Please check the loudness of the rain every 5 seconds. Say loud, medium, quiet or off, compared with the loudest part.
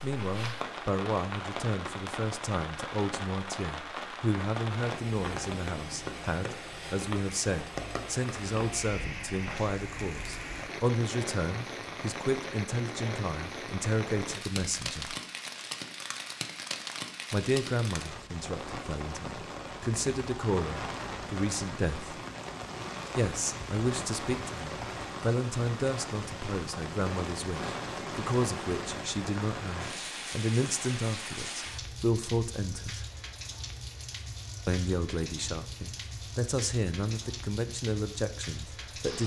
loud, loud, loud, loud, loud, loud, loud, medium.